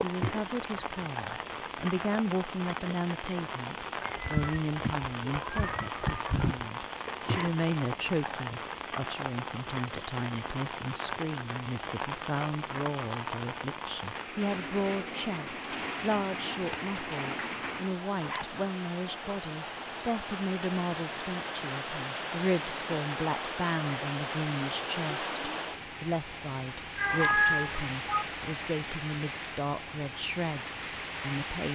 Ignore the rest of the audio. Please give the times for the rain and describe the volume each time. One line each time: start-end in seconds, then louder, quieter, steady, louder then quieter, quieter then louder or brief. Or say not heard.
0.0-31.6 steady.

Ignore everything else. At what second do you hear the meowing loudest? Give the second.
27 s.